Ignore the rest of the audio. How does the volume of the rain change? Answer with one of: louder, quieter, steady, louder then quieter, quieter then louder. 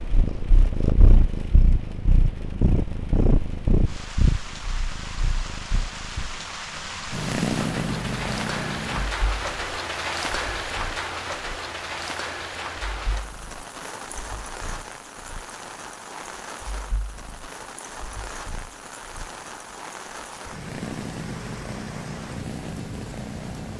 louder then quieter.